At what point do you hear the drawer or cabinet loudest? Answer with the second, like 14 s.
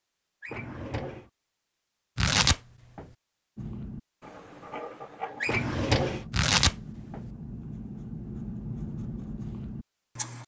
6 s.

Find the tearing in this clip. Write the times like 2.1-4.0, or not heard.
2.1-3.0, 6.3-7.2.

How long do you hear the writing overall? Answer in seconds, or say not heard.
7 s.